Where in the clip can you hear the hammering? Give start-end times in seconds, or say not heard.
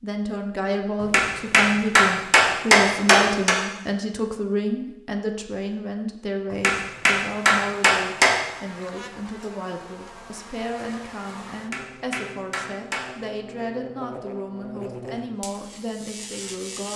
1.0-3.5, 6.5-8.4, 11.6-13.1.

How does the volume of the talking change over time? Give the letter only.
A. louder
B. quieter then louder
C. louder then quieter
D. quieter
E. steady
D.